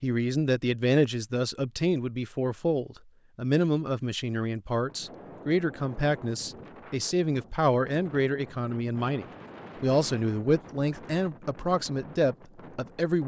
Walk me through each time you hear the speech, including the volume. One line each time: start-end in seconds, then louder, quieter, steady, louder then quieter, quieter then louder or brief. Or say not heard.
0.0-13.2 steady.